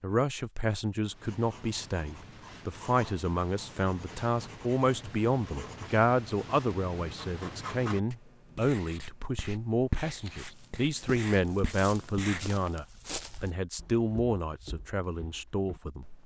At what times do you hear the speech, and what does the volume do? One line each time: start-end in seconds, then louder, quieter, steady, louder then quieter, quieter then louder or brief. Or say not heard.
0.0-16.1 steady.